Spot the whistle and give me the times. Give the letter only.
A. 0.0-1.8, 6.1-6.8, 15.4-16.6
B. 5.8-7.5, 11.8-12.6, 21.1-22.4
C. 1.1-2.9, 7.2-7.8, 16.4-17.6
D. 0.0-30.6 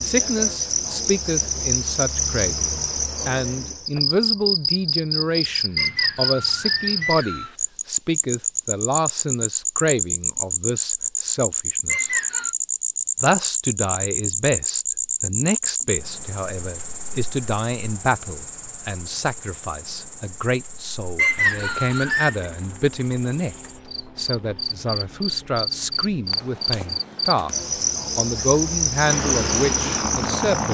B.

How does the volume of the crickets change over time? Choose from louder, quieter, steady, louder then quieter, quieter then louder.
quieter then louder.